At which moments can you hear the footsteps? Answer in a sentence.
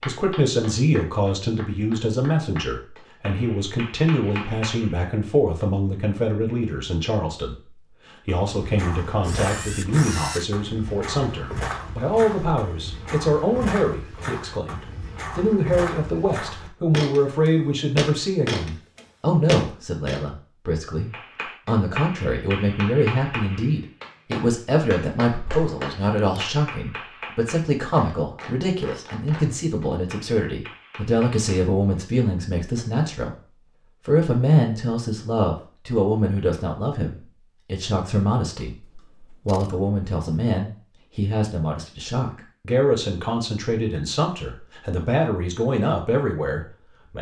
You can hear the footsteps from 8.3 to 20.2 s.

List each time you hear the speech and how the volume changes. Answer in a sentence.
The speech can be heard from 0.1 to 47.1 s, at a steady volume.